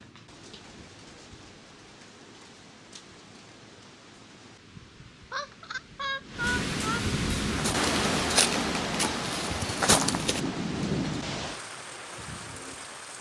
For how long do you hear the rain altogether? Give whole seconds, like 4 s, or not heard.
13 s.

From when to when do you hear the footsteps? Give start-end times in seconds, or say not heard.
7.5-10.4.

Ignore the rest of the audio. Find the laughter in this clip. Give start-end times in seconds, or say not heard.
5.3-7.0.